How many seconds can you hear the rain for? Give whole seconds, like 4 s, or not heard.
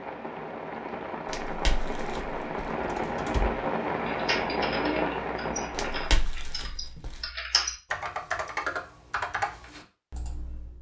6 s.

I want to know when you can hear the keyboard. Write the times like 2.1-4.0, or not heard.
2.8-10.7.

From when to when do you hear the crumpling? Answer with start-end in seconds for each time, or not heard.
1.2-2.7, 5.8-7.2.